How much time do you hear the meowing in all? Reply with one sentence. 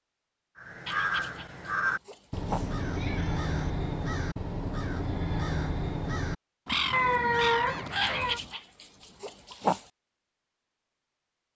The meowing can be heard for 2 seconds in total.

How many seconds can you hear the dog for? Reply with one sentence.
You can hear the dog for 4 seconds altogether.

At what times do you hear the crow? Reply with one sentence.
You can hear the crow from 0.6 to 8.6 s.